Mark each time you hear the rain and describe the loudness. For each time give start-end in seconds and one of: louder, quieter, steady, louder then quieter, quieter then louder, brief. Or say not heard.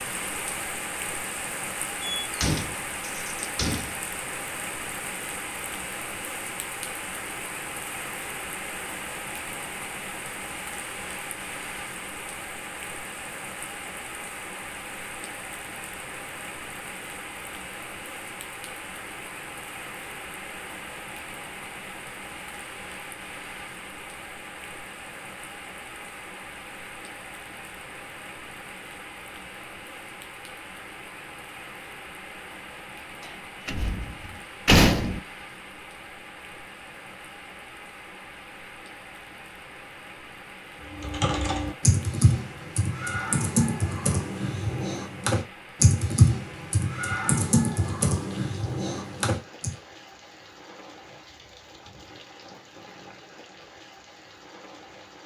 0.0-55.2 quieter.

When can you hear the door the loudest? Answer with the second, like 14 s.
35 s.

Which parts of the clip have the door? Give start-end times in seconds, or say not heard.
2.2-4.0, 33.6-35.2.